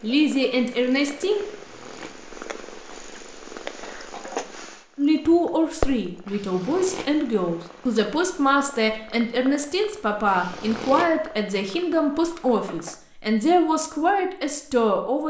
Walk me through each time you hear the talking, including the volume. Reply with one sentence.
The talking can be heard briefly from 0.0 to 1.4 s; and from 5.0 to 15.2 s, at a steady volume.